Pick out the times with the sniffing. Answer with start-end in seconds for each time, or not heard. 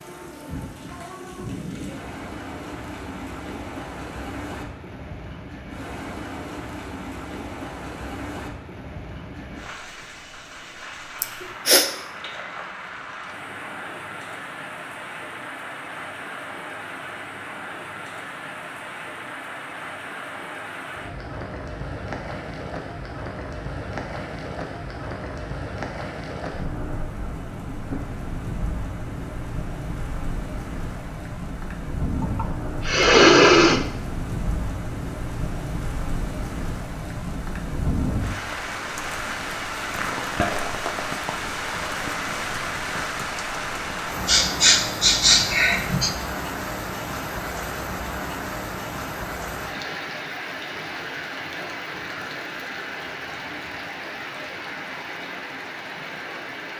11.2-11.8, 32.2-33.8, 44.2-46.1.